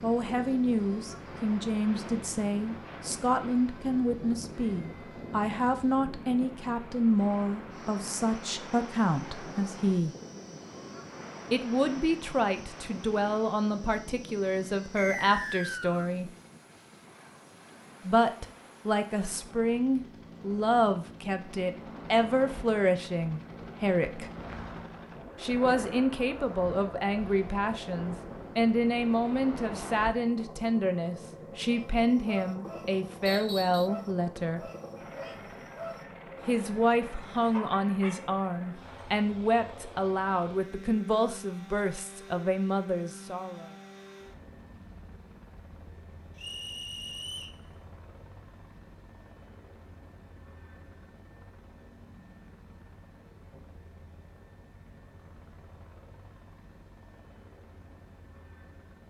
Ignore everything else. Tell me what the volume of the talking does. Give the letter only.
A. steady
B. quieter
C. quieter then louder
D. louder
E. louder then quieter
A.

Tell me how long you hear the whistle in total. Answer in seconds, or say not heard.
3 s.